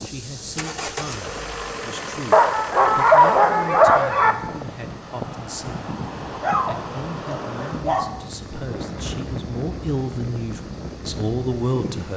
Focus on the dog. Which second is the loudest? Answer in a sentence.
The loudest moment of the dog is at 3 seconds.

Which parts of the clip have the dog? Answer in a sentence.
The dog can be heard from 2.3 to 4.3 s and from 6.4 to 8.2 s.